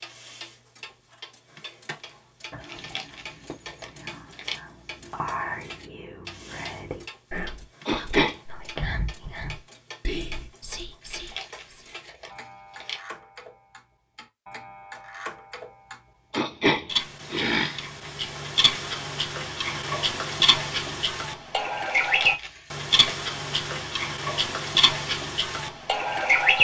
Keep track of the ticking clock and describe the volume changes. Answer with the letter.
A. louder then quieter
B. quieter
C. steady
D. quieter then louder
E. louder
E.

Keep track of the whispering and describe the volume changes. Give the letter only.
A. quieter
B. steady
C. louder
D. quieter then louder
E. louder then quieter
C.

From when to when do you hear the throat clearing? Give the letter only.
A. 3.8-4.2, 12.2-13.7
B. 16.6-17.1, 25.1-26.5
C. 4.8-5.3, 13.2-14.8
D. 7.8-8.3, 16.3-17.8
D.